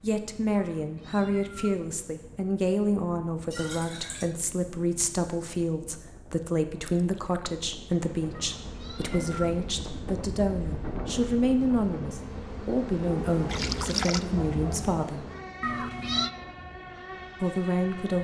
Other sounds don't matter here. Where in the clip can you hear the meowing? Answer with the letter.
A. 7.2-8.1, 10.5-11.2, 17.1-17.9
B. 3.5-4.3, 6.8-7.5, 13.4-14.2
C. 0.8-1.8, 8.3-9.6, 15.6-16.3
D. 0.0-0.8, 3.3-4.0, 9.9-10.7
C.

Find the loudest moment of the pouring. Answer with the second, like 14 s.
14 s.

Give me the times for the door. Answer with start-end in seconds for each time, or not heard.
not heard.